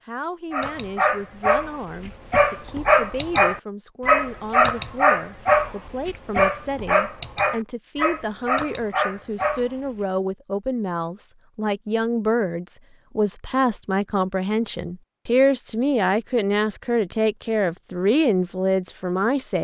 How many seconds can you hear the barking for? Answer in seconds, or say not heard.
9 s.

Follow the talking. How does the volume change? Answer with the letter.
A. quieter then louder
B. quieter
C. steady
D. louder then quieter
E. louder
E.